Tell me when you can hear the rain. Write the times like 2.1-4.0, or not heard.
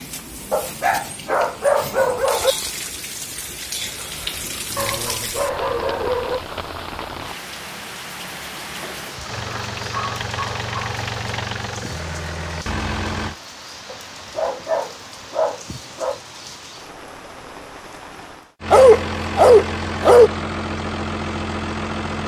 0.0-18.6.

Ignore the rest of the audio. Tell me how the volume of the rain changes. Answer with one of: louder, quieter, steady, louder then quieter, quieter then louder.
quieter.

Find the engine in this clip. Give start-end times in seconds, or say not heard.
9.2-13.3, 18.6-22.2.